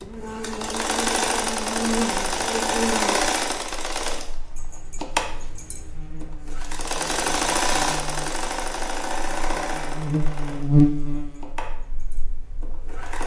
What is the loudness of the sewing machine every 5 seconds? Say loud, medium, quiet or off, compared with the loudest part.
loud, loud, quiet.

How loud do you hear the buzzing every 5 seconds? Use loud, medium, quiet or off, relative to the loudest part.
medium, quiet, loud.